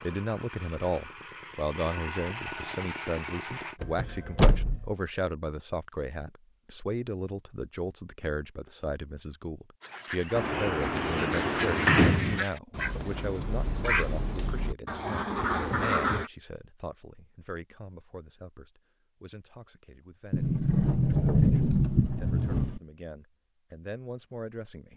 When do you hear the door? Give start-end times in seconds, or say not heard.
3.8-4.9, 10.3-12.4, 20.3-22.8.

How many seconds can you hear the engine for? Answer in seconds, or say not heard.
4 s.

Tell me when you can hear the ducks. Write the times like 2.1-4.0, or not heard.
9.8-16.3.